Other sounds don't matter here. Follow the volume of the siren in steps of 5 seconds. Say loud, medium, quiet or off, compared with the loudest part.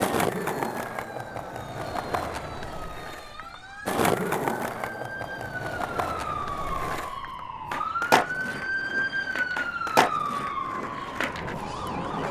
quiet, loud, loud.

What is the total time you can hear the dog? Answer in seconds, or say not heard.
not heard.